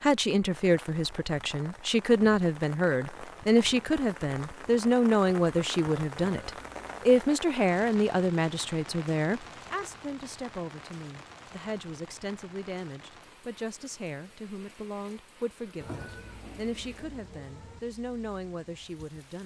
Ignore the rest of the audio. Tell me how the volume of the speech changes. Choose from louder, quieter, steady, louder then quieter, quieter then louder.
quieter.